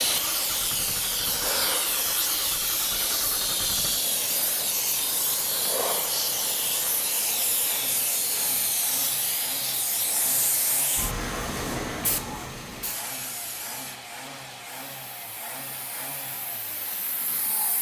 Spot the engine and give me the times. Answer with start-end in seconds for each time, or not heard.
0.0-17.7.